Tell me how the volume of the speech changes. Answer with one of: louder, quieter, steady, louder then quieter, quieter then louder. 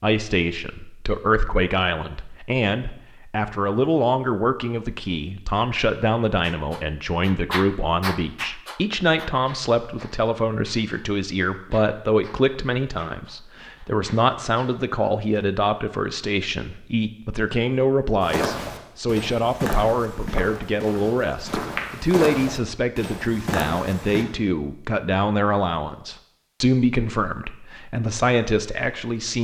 steady.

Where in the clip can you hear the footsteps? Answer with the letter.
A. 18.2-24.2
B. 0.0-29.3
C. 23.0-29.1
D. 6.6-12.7
A.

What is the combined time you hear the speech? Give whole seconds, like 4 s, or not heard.
29 s.